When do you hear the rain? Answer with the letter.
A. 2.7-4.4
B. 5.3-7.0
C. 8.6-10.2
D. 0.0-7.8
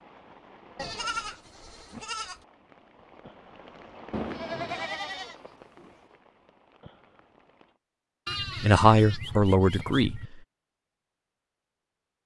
D.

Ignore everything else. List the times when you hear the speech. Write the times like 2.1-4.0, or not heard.
8.6-10.2.